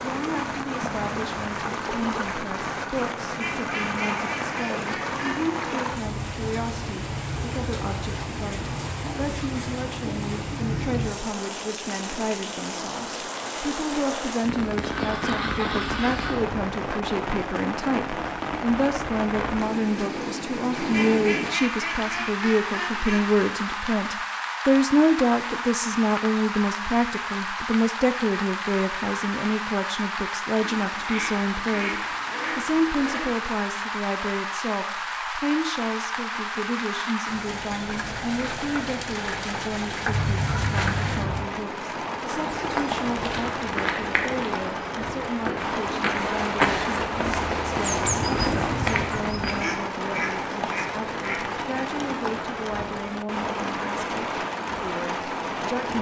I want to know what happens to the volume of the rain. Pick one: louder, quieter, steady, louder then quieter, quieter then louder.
steady.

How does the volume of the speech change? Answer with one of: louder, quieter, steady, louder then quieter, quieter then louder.
louder then quieter.